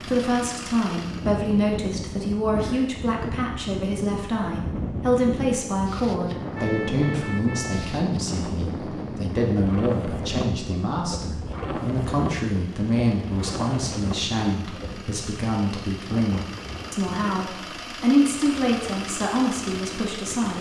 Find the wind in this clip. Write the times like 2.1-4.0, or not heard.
0.0-20.5.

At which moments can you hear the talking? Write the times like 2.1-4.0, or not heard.
0.0-20.5.